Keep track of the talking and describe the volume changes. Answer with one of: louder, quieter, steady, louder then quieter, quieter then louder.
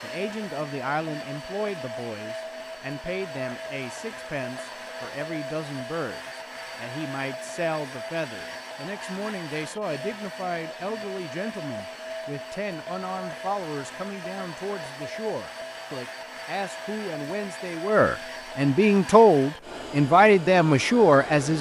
louder.